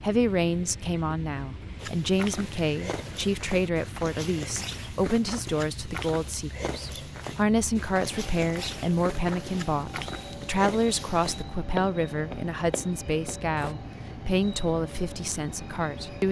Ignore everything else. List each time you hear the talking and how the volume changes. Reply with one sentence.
The talking can be heard from 0.0 to 16.2 s, at a steady volume.